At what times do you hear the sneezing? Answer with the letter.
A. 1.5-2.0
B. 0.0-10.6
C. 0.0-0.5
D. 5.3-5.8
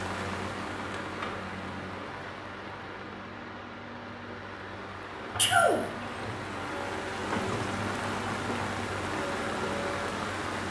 D.